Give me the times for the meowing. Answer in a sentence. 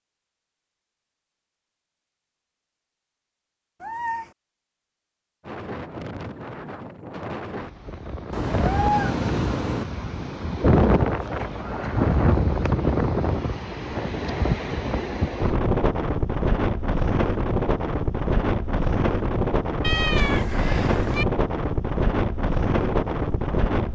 The meowing can be heard from 3.8 to 4.3 s, from 8.3 to 9.8 s and from 19.8 to 21.2 s.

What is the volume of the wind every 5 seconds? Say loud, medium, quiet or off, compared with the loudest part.
off, medium, loud, loud, loud.